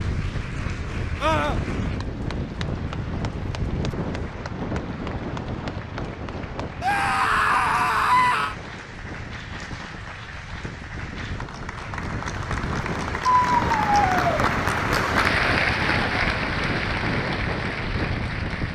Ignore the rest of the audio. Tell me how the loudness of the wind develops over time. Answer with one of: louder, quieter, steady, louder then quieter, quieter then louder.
quieter then louder.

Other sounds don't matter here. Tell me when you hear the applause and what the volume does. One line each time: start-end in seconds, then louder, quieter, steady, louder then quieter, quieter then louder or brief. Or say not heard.
0.0-18.7 louder.